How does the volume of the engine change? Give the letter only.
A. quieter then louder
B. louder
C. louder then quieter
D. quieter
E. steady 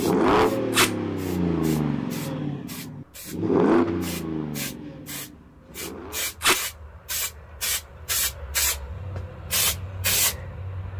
D.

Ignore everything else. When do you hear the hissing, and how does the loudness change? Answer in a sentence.
You can hear the hissing from 0.0 to 10.9 s, getting louder.